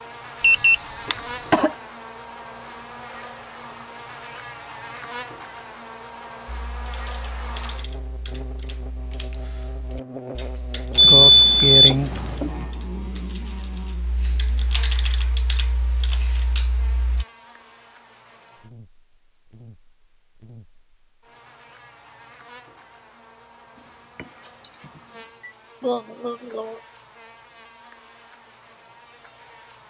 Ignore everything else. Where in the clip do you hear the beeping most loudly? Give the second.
11 s.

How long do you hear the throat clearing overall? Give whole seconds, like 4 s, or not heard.
3 s.